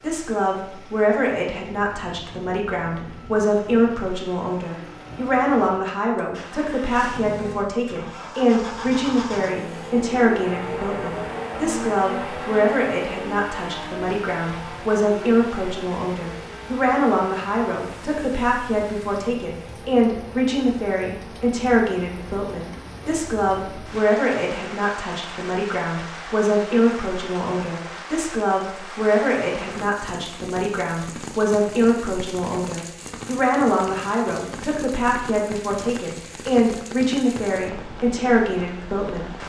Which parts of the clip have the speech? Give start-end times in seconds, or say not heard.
0.0-39.3.